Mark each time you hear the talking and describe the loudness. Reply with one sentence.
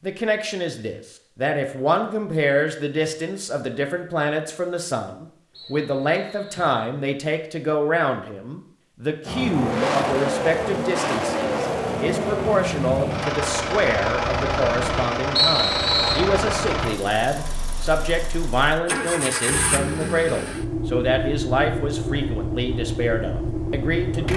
You can hear the talking from 0.0 to 24.3 s, at a steady volume.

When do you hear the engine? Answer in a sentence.
The engine can be heard from 9.2 to 24.3 s.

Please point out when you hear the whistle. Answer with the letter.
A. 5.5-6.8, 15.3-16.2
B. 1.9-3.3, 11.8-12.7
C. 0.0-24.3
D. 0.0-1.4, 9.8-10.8
A.